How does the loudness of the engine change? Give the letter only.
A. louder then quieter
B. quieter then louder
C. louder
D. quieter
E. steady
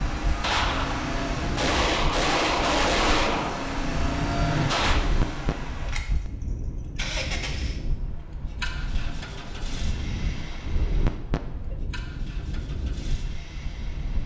D.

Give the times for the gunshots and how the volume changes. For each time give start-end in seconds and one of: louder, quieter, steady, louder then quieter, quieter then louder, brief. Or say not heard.
0.4-5.0 louder then quieter.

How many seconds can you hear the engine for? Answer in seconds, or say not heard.
14 s.